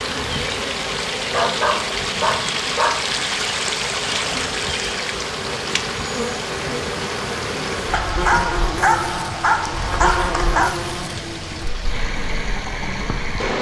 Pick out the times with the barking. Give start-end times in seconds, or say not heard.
1.3-3.0, 7.9-10.8.